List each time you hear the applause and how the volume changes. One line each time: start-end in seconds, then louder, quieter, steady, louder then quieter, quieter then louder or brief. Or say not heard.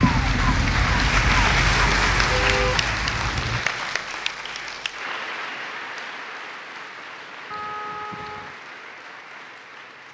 0.0-10.1 quieter.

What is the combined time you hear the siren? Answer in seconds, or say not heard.
4 s.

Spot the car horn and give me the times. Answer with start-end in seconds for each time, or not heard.
2.2-2.9, 7.5-8.6.